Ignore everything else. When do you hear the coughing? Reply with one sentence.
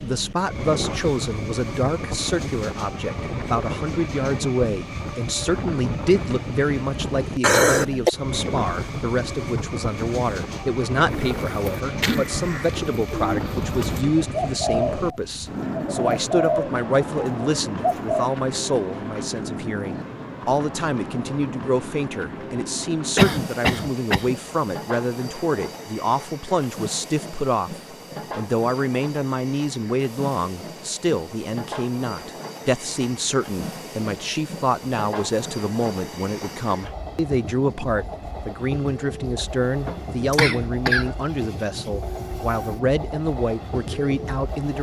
The coughing can be heard from 7.4 to 8.1 s, from 23.1 to 24.3 s and from 39.9 to 41.1 s.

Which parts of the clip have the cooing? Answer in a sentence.
The cooing can be heard from 11.1 to 18.3 s.